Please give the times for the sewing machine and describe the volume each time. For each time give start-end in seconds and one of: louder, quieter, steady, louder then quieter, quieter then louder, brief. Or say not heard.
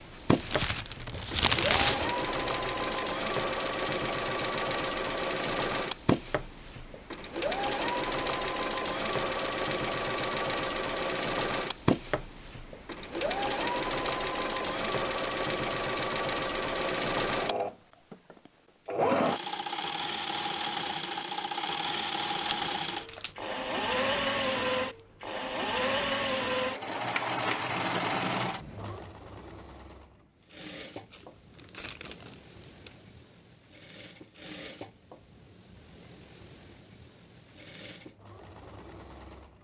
0.0-39.5 quieter.